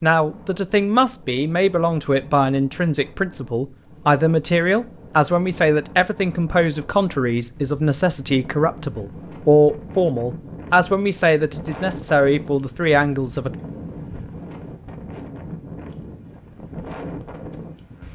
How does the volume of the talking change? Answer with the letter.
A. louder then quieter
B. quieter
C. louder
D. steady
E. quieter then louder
D.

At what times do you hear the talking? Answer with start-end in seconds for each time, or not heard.
0.0-13.5.